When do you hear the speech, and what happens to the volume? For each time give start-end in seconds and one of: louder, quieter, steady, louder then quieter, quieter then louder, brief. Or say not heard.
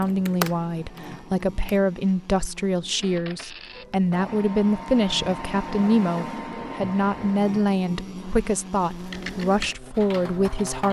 0.0-10.8 steady.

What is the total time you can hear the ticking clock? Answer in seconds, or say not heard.
not heard.